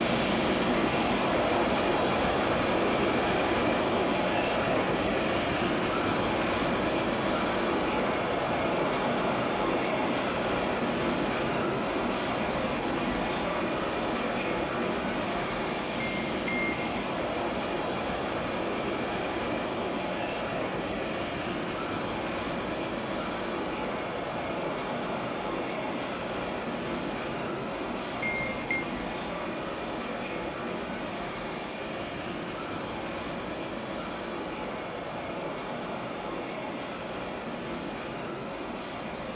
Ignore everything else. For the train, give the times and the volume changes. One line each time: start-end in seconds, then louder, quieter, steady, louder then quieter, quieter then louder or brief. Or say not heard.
0.0-39.3 quieter.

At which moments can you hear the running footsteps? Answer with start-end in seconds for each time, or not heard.
not heard.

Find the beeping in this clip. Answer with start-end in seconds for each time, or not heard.
15.9-16.9, 28.2-28.9.